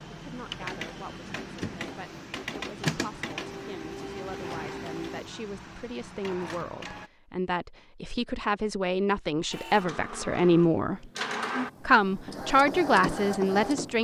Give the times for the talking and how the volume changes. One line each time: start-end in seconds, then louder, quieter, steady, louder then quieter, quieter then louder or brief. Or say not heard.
0.1-11.1 louder
11.8-13.9 brief.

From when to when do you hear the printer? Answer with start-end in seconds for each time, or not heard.
0.0-7.1, 9.5-13.9.